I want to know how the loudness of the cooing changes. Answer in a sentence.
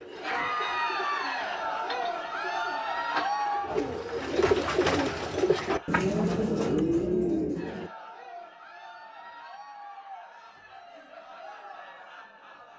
The loudness of the cooing goes up.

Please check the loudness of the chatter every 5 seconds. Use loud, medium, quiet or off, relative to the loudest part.
loud, quiet, quiet.